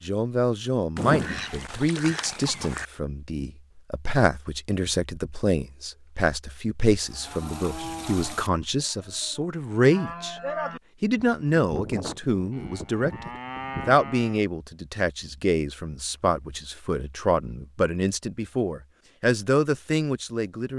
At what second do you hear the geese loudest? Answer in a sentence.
The volume of the geese peaks at 1 second.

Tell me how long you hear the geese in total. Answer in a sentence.
The geese can be heard for 2 seconds in total.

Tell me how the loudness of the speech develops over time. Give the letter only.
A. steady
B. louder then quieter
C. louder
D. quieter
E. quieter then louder
A.